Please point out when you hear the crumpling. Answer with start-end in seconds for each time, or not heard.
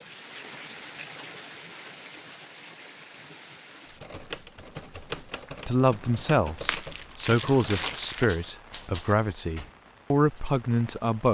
6.6-8.3.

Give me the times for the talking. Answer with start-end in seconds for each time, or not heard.
5.7-11.2.